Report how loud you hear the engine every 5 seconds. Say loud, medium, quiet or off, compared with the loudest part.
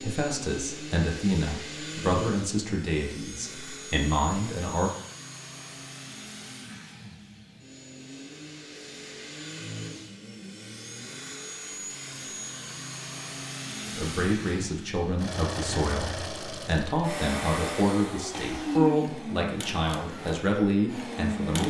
medium, medium, medium, loud, loud.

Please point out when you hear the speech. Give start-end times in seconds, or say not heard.
0.0-4.9, 13.8-21.6.